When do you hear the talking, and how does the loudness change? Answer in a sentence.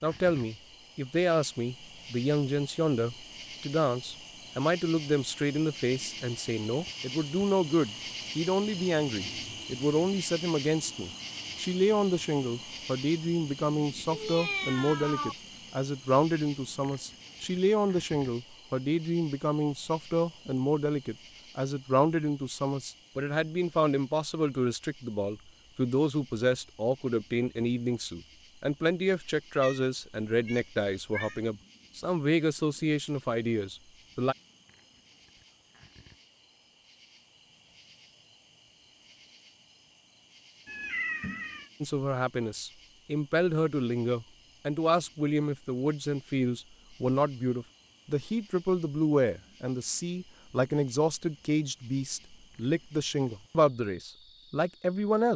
The talking can be heard from 0.0 to 34.4 s, at a steady volume; and from 41.8 to 55.3 s, at a steady volume.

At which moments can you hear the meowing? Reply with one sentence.
The meowing can be heard from 14.1 to 15.3 s, from 29.5 to 31.4 s and from 40.6 to 41.7 s.